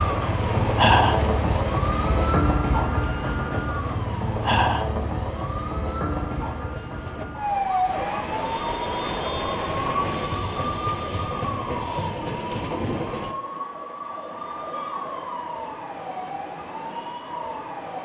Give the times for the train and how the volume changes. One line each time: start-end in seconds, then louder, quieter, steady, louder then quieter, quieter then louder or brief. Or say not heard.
0.0-13.3 quieter then louder.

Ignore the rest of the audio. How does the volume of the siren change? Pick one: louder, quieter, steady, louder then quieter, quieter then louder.
quieter.